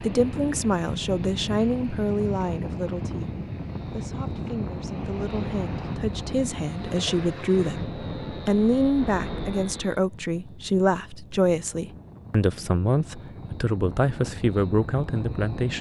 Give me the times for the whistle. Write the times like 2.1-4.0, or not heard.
not heard.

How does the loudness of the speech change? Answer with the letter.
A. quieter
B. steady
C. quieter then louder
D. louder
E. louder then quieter
C.